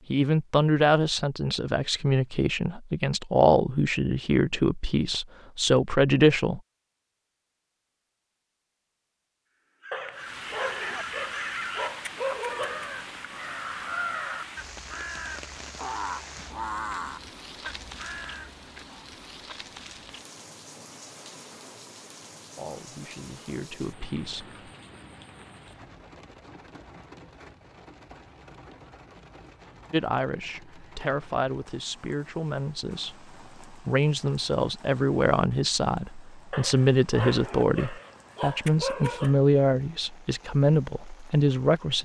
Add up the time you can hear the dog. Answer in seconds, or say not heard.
6 s.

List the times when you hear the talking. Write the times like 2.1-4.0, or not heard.
0.1-6.6, 22.6-24.4, 29.9-42.0.